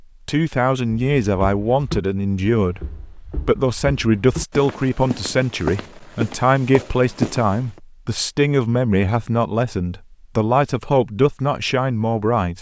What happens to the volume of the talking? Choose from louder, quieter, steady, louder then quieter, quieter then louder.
steady.